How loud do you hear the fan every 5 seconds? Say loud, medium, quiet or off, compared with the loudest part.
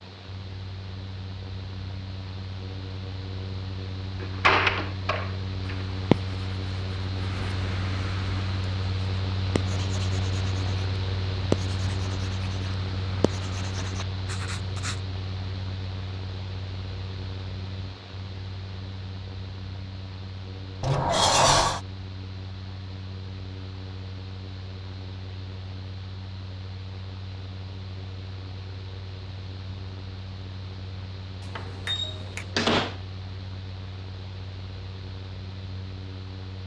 medium, loud, loud, medium, medium, medium, medium, medium.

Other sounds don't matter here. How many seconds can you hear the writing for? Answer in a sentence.
The writing can be heard for 9 seconds in total.